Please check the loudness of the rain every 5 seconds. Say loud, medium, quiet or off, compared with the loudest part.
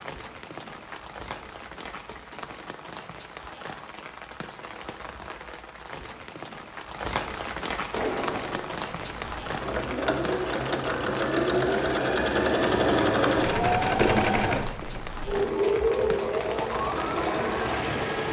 medium, loud, loud, loud.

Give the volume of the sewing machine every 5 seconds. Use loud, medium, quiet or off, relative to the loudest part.
off, medium, loud, loud.